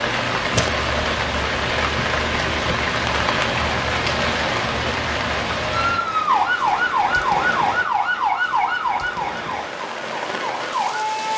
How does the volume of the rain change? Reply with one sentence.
The volume of the rain goes down.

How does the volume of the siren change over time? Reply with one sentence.
The volume of the siren goes down.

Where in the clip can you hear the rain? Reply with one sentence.
The rain can be heard from 0.0 to 11.3 s.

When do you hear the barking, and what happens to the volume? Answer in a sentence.
You can't hear the barking here.